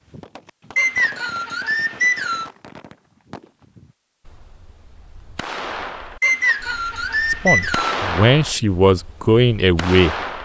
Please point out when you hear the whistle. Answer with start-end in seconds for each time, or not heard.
0.8-2.5, 6.2-8.0.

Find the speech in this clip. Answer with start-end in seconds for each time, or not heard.
7.3-10.2.